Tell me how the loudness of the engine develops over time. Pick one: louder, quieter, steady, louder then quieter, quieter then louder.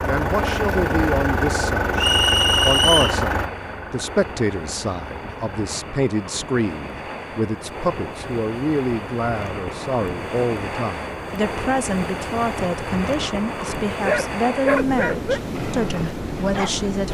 quieter.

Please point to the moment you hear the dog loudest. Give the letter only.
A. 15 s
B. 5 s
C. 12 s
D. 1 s
A.